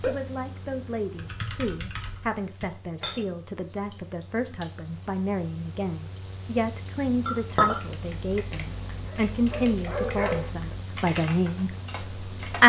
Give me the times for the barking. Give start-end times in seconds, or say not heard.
8.9-10.8.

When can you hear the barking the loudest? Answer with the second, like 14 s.
10 s.